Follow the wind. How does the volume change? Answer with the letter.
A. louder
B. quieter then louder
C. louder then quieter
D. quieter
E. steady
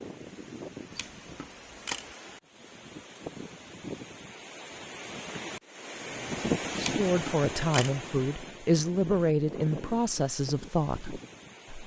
C.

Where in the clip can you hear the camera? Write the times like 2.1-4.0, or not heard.
0.9-2.1, 6.8-8.0.